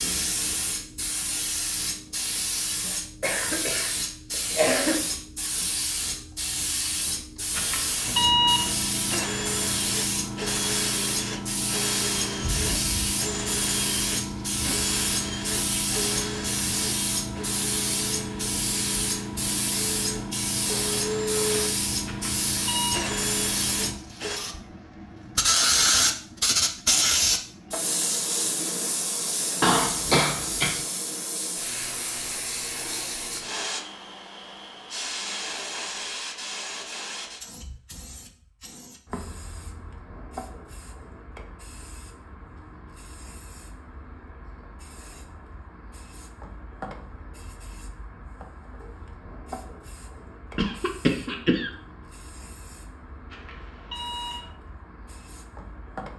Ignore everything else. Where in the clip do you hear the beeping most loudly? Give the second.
8 s.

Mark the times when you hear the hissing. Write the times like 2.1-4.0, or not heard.
0.0-56.1.